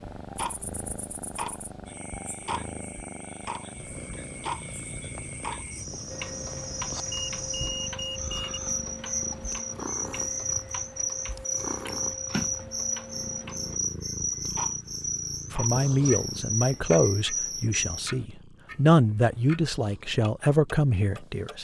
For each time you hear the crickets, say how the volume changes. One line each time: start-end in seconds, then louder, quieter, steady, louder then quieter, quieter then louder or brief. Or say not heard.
0.0-18.1 louder.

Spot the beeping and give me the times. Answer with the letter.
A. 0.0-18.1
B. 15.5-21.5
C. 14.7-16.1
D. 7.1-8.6
D.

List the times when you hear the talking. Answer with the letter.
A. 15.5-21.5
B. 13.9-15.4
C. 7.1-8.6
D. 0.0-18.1
A.